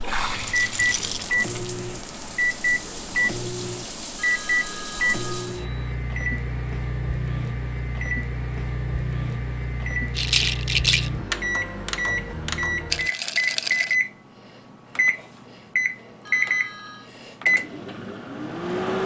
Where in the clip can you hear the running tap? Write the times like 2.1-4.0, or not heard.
0.0-5.7.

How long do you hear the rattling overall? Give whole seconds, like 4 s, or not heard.
3 s.